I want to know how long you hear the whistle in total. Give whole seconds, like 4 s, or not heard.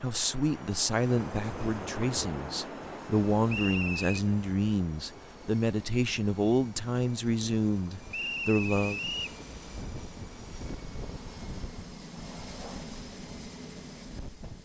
2 s.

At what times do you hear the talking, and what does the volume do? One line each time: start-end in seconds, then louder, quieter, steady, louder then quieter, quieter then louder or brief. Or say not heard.
0.0-9.0 steady.